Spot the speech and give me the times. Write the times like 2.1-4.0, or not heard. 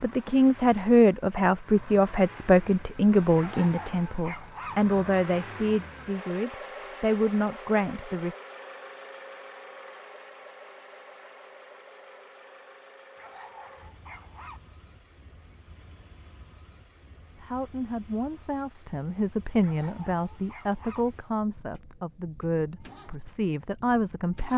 0.0-8.3, 17.4-24.5.